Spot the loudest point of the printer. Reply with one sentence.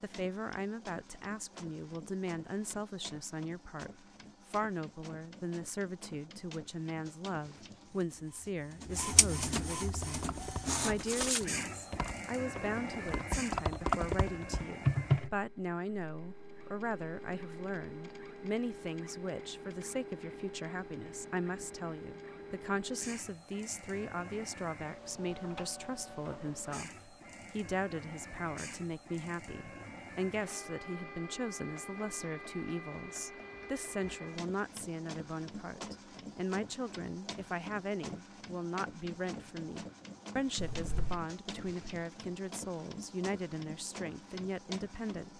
The loudest moment of the printer is at 11 seconds.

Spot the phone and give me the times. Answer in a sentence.
You can hear the phone from 40.5 to 41.2 s.